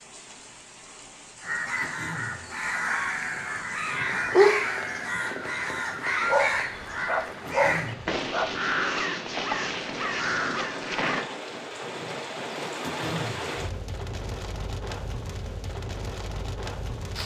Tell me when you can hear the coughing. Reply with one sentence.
The coughing can be heard from 1.8 to 2.5 s, from 7.5 to 8.1 s and from 12.8 to 13.4 s.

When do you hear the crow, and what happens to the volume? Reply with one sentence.
You can hear the crow from 1.4 to 11.3 s, at a steady volume.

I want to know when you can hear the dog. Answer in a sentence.
The dog can be heard from 3.9 to 8.5 s.